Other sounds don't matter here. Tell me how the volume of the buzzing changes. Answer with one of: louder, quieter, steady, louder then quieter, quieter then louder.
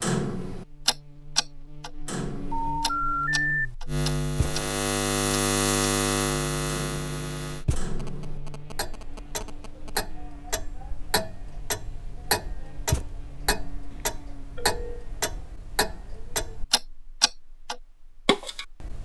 louder then quieter.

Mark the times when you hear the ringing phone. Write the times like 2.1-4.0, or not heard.
2.5-3.7, 8.0-10.0, 13.9-15.1.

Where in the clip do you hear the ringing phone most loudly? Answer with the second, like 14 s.
3 s.